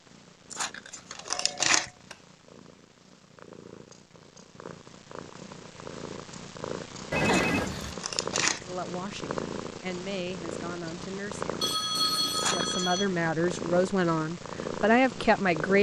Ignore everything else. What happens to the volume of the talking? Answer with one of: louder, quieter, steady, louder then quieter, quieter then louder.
louder.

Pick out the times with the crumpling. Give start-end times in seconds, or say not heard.
0.5-1.9, 7.2-8.7, 12.3-13.0.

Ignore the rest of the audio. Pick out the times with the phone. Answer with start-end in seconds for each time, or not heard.
0.9-2.2, 7.1-8.0, 11.6-13.1.